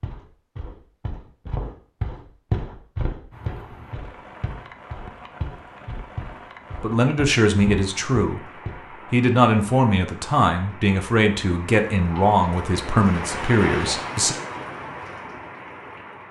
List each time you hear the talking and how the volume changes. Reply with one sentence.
The talking can be heard briefly from 6.8 to 8.4 s; and from 9.1 to 14.3 s, at a steady volume.